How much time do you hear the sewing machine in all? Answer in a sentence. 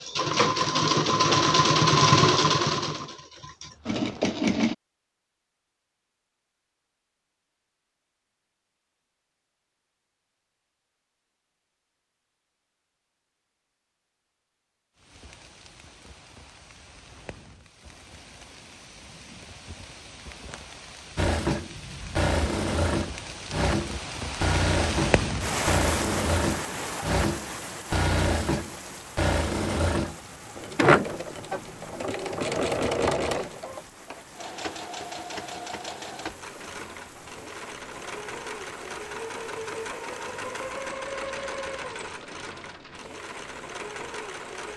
The sewing machine can be heard for 28 seconds in total.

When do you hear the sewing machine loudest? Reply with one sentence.
The volume of the sewing machine peaks at 2 seconds.